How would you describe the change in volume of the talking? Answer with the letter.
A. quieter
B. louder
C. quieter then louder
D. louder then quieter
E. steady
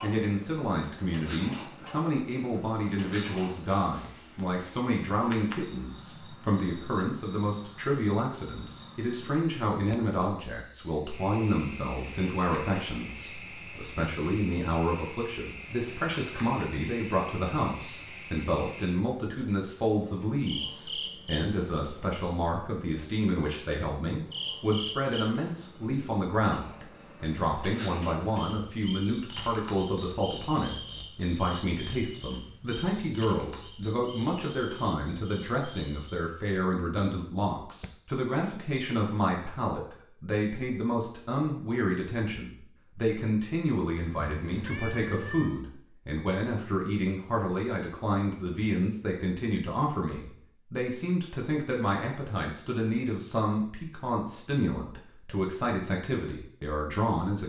E.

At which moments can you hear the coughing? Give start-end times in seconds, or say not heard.
not heard.